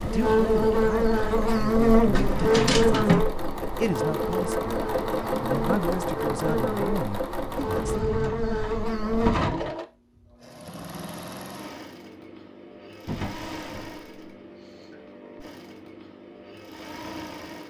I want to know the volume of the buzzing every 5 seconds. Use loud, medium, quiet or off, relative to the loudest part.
loud, medium, off, off.